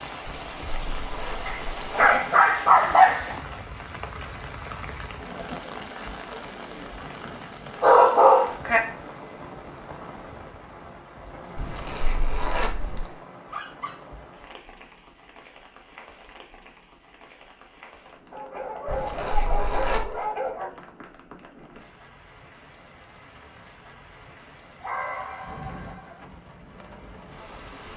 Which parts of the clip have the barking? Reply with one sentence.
You can hear the barking from 1.4 to 3.4 s, from 7.8 to 8.8 s, from 13.4 to 14.2 s, from 18.3 to 20.7 s and from 24.8 to 26.2 s.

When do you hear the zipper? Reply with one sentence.
The zipper can be heard from 0.2 to 2.2 s, from 11.6 to 13.1 s and from 18.9 to 20.1 s.